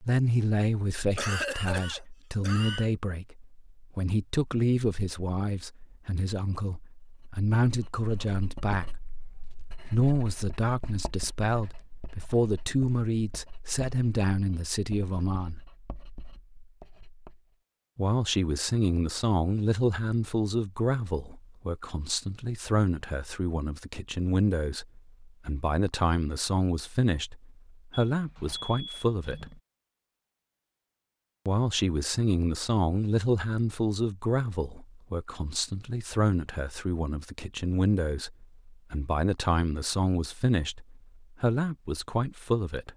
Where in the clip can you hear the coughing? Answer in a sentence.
You can hear the coughing from 1.1 to 2.9 s.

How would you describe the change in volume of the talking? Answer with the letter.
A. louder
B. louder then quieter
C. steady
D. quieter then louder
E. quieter
C.